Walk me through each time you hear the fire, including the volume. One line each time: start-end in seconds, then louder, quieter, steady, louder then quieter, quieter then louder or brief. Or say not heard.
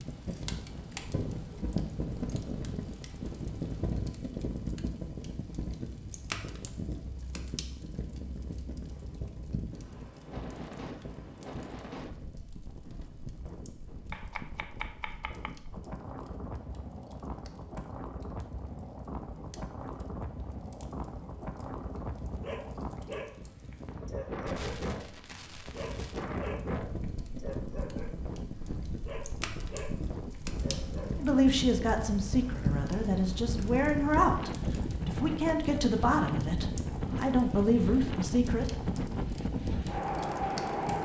0.0-40.9 quieter then louder.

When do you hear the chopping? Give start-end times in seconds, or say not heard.
14.1-15.6.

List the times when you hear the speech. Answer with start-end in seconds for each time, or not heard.
31.1-38.6.